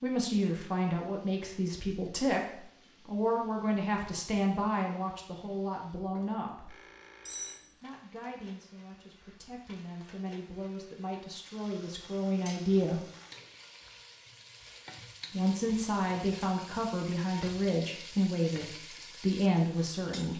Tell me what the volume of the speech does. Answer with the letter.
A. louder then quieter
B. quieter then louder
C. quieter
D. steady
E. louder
B.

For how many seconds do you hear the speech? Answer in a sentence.
The speech can be heard for 17 seconds in total.